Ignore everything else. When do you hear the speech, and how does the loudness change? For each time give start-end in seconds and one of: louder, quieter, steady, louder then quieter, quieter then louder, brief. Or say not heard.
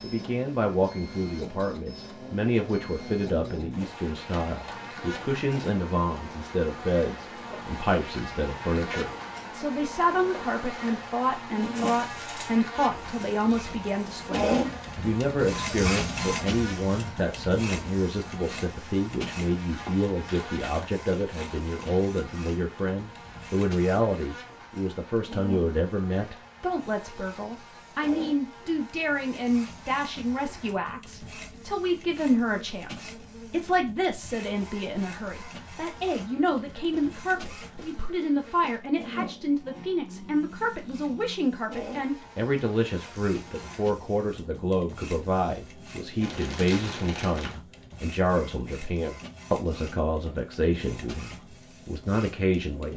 0.0-52.9 steady.